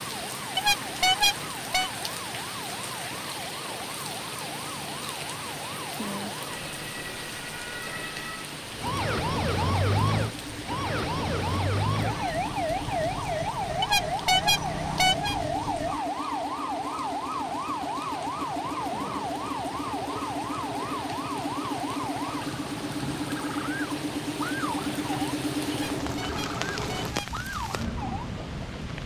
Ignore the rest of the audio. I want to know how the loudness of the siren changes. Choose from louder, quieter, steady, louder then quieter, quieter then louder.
louder then quieter.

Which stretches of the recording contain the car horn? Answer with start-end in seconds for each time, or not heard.
0.6-1.9, 13.8-15.3, 25.7-27.3.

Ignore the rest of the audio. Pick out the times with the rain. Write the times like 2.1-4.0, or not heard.
0.0-29.0.